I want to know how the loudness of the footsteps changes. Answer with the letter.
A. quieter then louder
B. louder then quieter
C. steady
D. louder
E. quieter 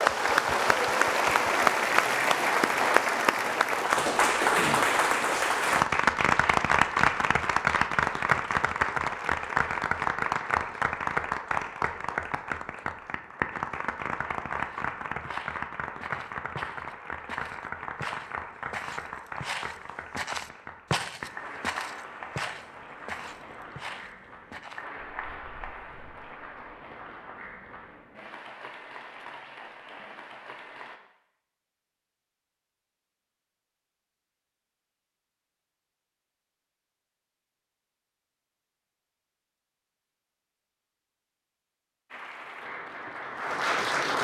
B.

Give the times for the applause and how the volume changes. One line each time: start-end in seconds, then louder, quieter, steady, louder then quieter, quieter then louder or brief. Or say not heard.
0.0-31.0 quieter
42.1-44.1 brief.